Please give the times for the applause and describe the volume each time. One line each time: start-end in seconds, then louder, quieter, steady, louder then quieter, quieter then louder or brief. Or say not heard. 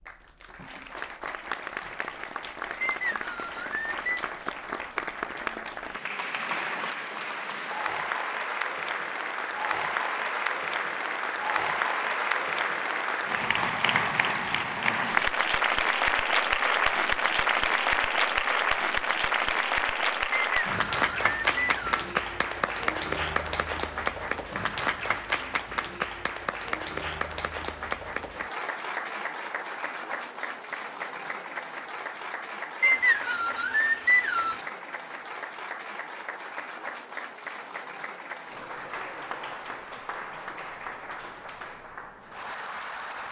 0.0-43.2 louder then quieter.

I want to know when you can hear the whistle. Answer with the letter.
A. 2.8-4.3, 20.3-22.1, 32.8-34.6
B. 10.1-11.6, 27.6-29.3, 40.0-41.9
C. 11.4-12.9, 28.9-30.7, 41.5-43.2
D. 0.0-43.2
A.